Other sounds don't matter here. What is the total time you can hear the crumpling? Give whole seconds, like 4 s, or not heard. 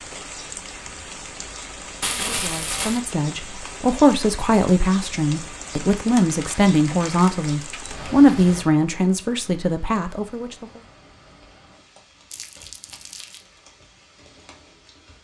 4 s.